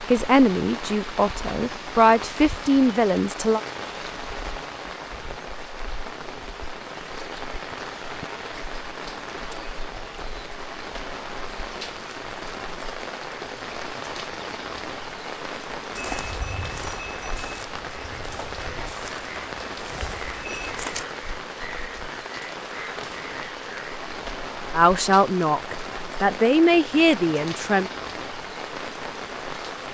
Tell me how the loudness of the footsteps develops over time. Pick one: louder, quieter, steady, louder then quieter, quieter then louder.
quieter then louder.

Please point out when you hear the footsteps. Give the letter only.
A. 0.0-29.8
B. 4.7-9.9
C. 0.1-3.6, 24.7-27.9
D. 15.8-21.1
D.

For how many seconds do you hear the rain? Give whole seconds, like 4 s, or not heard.
30 s.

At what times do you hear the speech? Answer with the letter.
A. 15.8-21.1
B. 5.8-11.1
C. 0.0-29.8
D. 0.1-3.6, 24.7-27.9
D.